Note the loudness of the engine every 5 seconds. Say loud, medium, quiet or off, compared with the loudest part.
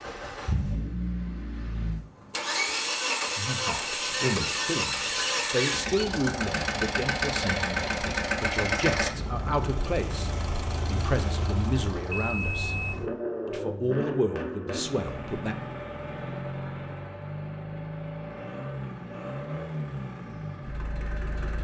loud, loud, medium, medium, medium.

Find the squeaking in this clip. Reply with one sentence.
You can hear the squeaking from 4.0 to 6.0 s.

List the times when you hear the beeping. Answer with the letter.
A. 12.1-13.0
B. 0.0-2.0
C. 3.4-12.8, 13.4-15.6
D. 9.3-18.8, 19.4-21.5
A.